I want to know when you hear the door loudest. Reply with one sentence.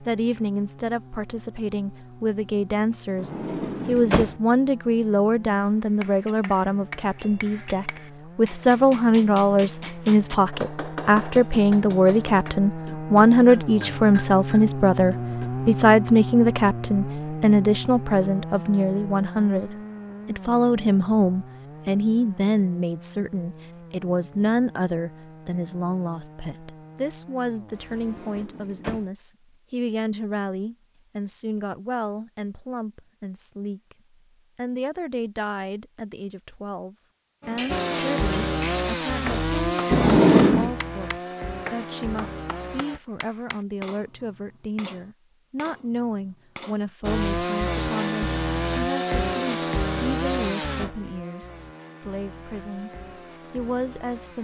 The volume of the door peaks at 40 seconds.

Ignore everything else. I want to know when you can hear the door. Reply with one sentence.
You can hear the door from 3.1 to 4.3 s, from 27.9 to 29.1 s and from 39.9 to 40.8 s.